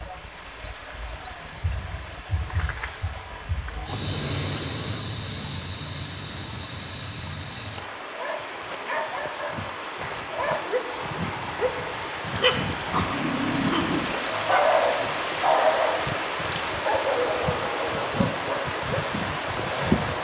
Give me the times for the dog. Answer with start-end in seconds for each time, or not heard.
8.1-16.1, 16.9-19.1.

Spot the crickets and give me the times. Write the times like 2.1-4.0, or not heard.
0.0-20.1.